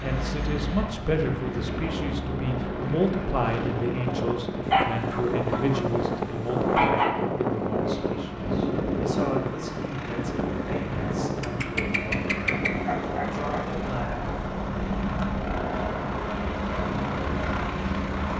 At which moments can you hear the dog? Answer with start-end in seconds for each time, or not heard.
4.7-7.2, 11.4-13.7.